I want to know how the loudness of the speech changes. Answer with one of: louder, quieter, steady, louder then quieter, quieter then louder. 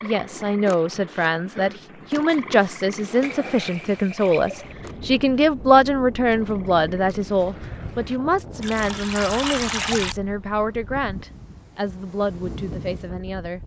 quieter.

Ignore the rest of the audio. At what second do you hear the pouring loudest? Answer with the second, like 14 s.
10 s.